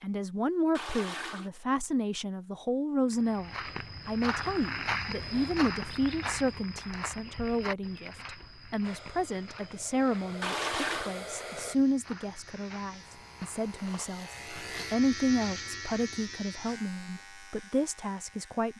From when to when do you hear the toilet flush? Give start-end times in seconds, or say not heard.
0.8-1.5, 10.4-11.2.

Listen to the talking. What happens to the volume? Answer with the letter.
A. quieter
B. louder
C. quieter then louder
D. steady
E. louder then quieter
D.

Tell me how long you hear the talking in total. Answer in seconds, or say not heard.
19 s.